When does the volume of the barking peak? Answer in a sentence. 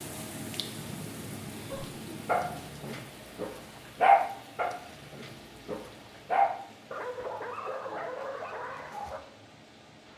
The volume of the barking peaks at 4 seconds.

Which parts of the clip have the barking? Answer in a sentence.
The barking can be heard from 1.7 to 9.2 s.